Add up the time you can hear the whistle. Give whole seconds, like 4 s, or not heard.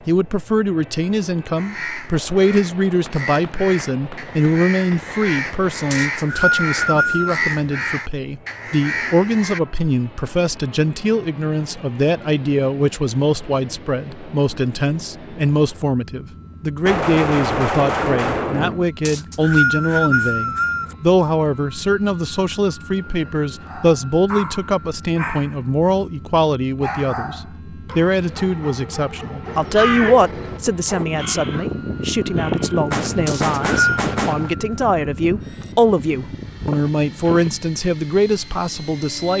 4 s.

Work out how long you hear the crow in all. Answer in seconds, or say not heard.
16 s.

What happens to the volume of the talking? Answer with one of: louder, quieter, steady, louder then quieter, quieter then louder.
steady.